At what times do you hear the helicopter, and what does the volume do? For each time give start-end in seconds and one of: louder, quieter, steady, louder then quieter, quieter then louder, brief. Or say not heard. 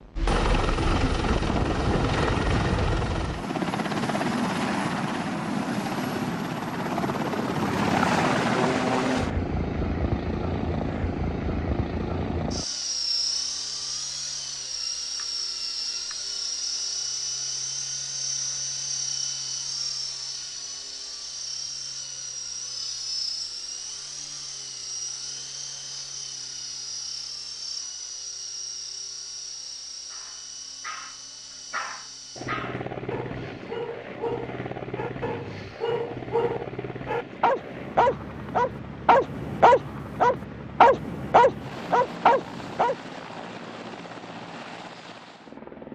0.0-45.9 quieter.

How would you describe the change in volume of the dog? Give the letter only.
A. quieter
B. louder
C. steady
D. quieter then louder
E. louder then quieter
B.